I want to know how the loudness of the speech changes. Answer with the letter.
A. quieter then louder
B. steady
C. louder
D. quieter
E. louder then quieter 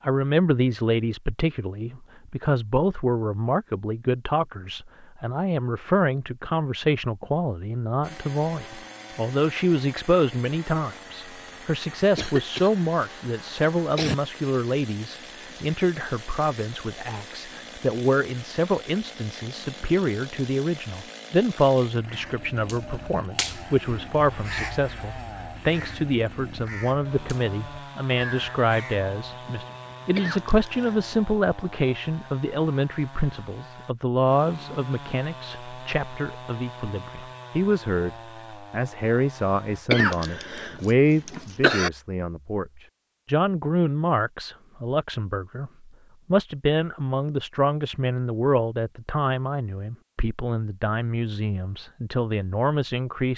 B.